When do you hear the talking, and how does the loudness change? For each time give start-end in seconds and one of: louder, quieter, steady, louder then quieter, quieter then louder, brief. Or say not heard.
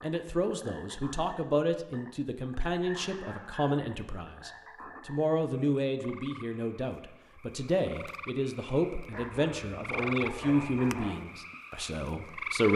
0.0-12.7 steady.